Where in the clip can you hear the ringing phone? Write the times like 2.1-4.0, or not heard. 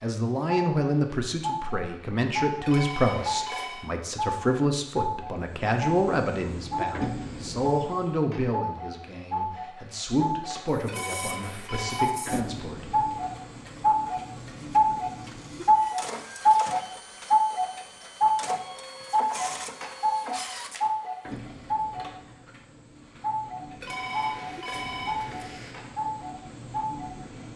2.6-3.9, 10.8-12.1, 23.8-25.8.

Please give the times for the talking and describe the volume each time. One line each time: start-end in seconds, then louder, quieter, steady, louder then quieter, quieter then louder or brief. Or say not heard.
0.0-13.1 quieter.